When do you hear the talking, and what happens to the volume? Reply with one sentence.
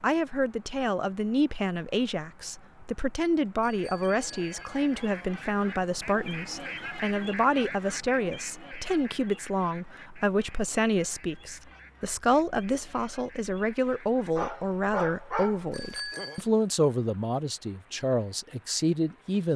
The talking can be heard from 0.0 to 19.5 s, at a steady volume.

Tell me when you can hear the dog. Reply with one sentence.
The dog can be heard from 14.3 to 15.9 s.